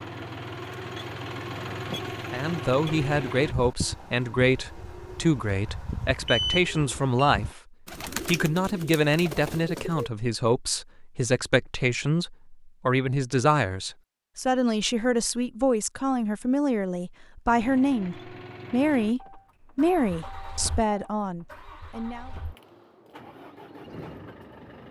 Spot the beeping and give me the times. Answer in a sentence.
The beeping can be heard from 6.2 to 7.3 s.